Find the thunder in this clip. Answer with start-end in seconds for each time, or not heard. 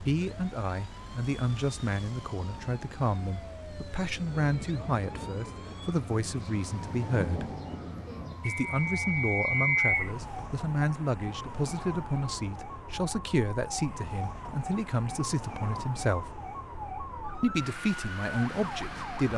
4.2-8.4.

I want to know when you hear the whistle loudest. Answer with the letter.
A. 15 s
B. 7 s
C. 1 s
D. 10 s
D.